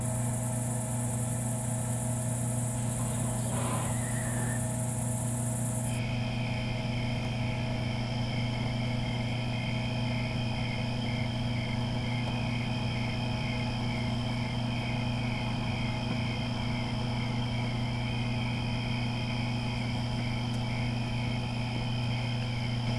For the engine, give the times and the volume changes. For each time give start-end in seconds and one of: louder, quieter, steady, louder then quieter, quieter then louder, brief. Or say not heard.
0.0-22.9 steady.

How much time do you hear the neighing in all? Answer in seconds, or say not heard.
2 s.